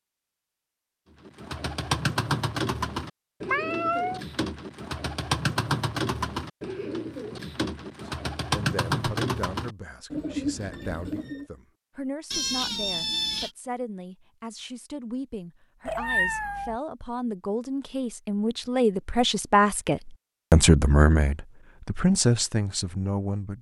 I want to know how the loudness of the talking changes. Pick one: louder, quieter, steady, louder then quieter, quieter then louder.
louder.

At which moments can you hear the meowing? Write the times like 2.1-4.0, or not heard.
3.5-4.2, 12.3-13.5, 15.8-16.8.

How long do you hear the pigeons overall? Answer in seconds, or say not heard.
10 s.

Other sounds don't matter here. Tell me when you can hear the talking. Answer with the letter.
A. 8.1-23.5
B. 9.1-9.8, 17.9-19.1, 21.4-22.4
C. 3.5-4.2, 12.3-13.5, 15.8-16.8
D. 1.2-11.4
A.